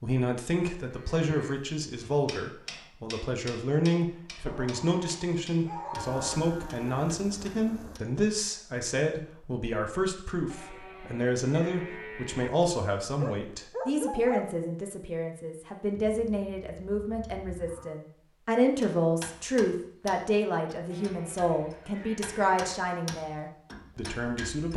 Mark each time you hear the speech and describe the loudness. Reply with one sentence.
The speech can be heard from 0.0 to 24.7 s, at a steady volume.